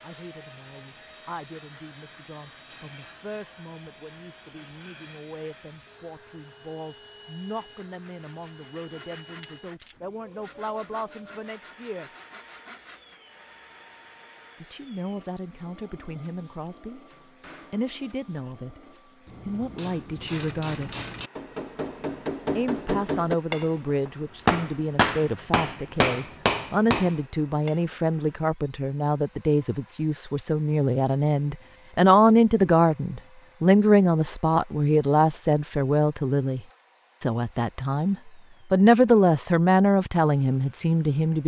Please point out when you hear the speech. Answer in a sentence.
The speech can be heard from 0.0 to 12.1 s, from 14.6 to 17.0 s, from 17.7 to 18.8 s, from 19.4 to 20.9 s, from 22.6 to 36.6 s and from 37.2 to 41.4 s.